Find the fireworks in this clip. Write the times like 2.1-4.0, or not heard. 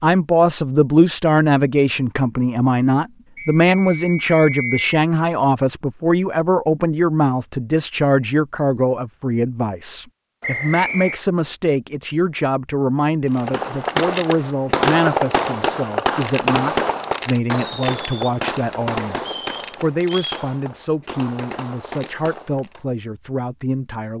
13.3-22.9.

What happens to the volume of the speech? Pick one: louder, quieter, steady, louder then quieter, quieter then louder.
quieter.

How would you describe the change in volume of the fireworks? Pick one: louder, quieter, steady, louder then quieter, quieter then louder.
quieter.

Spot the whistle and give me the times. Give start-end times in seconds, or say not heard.
3.4-4.9, 10.4-11.2, 19.2-20.4.